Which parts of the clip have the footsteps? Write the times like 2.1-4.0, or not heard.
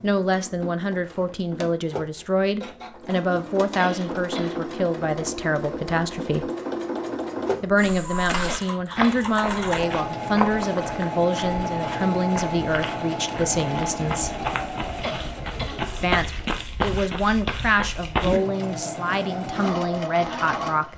7.8-18.4.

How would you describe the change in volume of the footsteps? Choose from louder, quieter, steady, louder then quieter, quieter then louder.
quieter then louder.